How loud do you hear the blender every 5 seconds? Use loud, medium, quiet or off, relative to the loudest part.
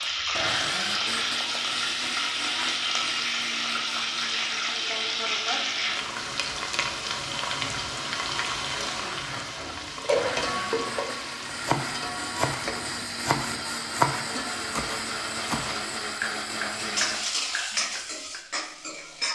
loud, medium, loud, loud.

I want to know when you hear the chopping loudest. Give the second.
14 s.